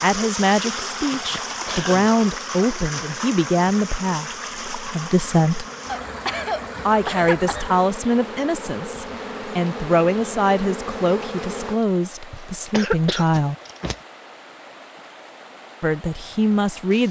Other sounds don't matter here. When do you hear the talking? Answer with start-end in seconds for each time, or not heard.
0.0-5.7, 6.8-13.6, 15.8-17.0.